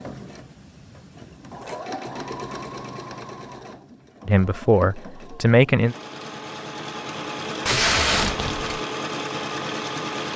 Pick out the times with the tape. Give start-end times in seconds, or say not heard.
7.7-8.7.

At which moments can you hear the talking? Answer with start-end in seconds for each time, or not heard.
4.2-6.0.